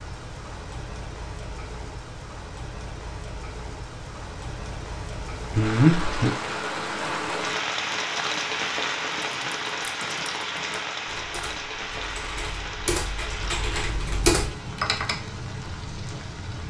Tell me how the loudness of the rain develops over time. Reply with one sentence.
The volume of the rain goes up, then down.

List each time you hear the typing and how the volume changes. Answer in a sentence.
The typing can be heard from 9.1 to 15.3 s, getting louder.